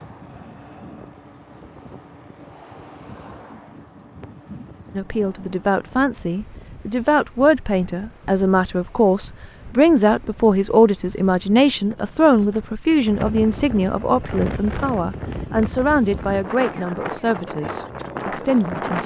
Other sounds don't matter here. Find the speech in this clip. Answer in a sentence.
The speech can be heard from 4.9 to 19.0 s.